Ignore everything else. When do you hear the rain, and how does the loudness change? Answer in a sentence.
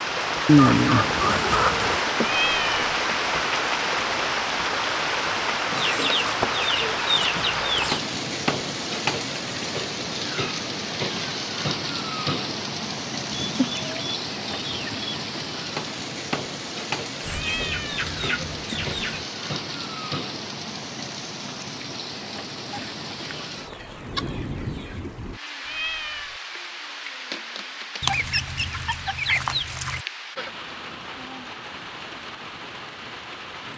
The rain can be heard from 0.0 to 33.7 s, getting quieter.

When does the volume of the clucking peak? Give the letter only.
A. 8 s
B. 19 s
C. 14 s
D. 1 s
D.